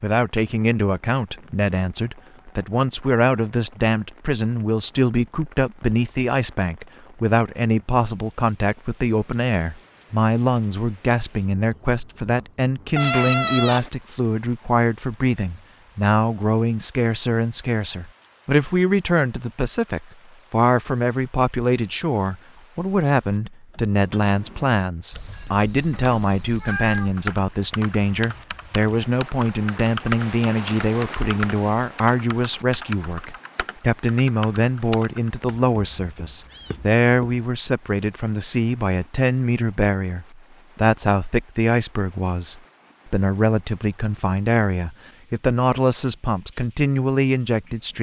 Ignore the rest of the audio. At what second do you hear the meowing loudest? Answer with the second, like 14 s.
13 s.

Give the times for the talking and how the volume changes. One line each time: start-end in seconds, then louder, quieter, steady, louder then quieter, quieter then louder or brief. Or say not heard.
0.0-47.9 steady.